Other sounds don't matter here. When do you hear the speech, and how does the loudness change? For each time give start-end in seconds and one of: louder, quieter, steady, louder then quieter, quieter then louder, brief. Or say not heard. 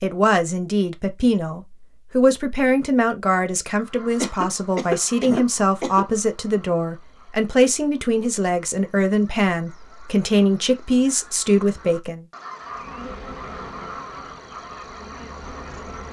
0.0-12.2 steady.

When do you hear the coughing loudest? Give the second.
5 s.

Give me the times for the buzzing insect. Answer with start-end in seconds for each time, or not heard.
12.6-16.0.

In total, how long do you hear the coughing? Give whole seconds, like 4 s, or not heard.
2 s.